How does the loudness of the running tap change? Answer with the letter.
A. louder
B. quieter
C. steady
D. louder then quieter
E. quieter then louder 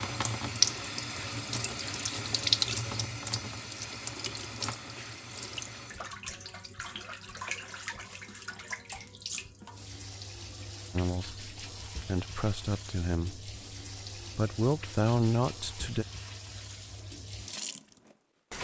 B.